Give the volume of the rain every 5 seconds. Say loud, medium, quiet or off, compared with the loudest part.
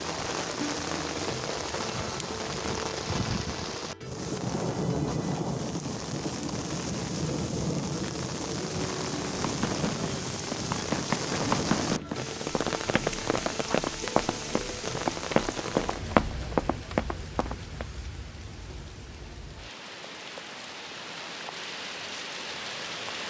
loud, loud, loud, medium, medium.